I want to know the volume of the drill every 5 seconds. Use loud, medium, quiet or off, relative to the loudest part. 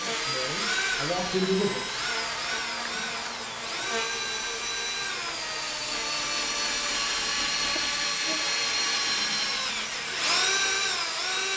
medium, loud, loud.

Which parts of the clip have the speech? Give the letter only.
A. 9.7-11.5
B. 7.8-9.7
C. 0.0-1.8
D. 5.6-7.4
C.